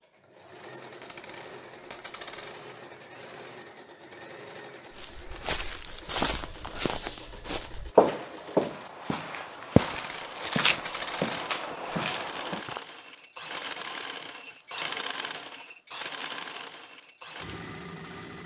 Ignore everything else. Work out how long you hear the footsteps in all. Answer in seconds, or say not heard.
8 s.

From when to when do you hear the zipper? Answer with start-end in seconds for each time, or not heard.
not heard.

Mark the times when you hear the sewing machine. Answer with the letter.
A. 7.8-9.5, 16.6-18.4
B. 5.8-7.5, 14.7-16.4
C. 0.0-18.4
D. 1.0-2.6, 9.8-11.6
C.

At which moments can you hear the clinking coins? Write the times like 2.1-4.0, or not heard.
1.0-2.6, 9.8-11.6.